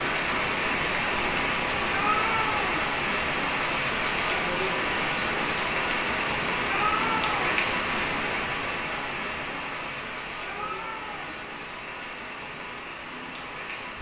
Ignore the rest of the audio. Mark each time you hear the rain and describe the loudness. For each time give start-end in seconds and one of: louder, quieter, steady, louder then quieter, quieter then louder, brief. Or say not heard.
0.0-13.9 quieter.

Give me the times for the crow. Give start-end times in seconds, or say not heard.
not heard.